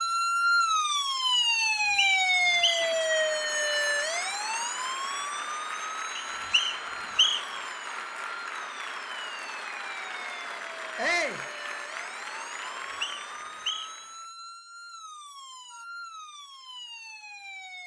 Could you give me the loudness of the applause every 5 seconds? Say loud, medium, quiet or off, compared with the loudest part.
loud, loud, loud, off.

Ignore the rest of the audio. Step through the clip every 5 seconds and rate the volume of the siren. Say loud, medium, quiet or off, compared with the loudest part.
loud, quiet, quiet, quiet.